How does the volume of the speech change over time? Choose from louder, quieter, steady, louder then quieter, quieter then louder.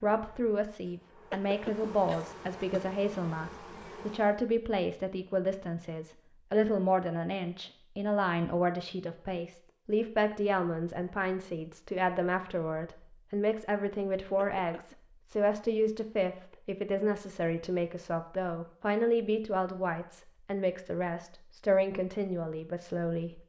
steady.